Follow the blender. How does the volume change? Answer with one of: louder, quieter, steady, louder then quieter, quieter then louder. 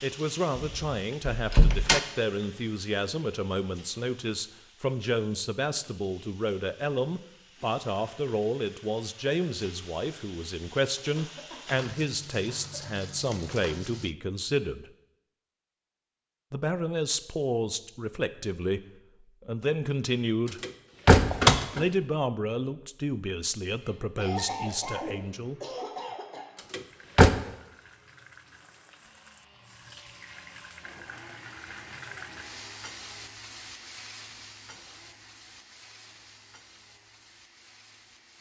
louder then quieter.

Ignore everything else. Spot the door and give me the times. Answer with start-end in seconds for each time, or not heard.
0.6-2.0, 20.6-21.9, 26.7-27.4.